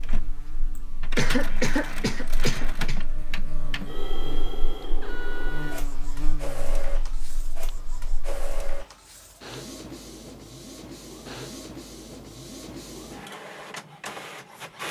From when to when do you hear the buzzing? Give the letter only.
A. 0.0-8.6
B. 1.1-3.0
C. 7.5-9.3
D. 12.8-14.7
A.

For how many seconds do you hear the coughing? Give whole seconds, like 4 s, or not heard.
2 s.